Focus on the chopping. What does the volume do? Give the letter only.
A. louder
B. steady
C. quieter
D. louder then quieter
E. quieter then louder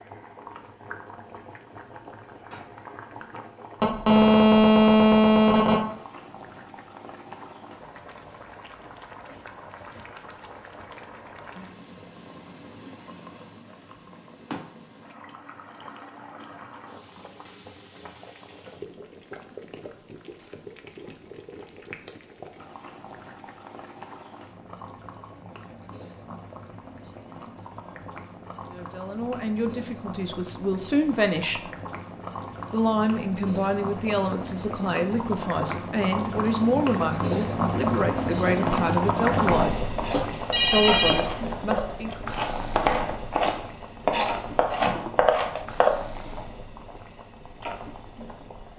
A.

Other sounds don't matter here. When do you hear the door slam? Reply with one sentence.
The door slam can't be heard in this clip.